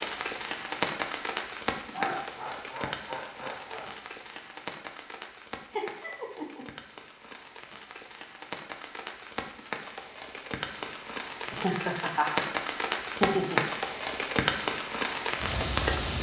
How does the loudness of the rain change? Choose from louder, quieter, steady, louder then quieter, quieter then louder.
quieter then louder.